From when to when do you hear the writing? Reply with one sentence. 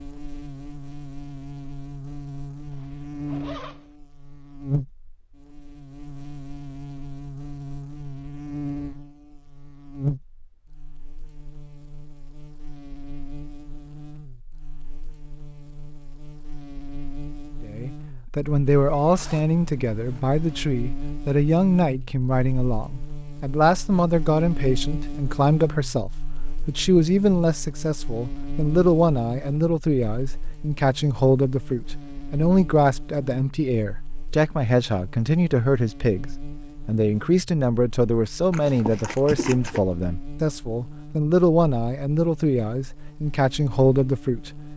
You can't hear the writing here.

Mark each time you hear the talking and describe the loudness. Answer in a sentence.
The talking can be heard from 17.6 to 44.6 s, at a steady volume.